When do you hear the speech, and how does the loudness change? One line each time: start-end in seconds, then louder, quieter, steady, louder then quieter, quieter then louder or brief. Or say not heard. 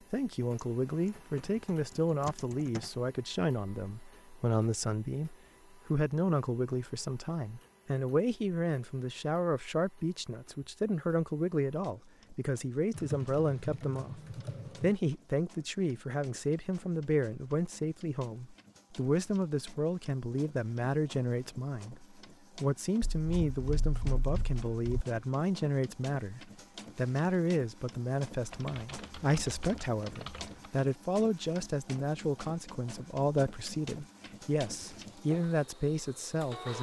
0.1-14.2 steady
14.8-36.7 steady.